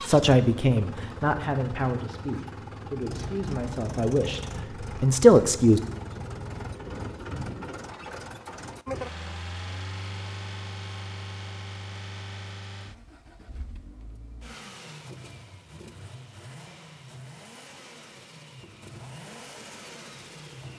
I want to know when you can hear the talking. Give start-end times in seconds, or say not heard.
0.0-5.8.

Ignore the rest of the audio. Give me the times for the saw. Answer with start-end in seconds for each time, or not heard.
not heard.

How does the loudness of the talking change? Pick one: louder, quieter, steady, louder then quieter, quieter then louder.
quieter then louder.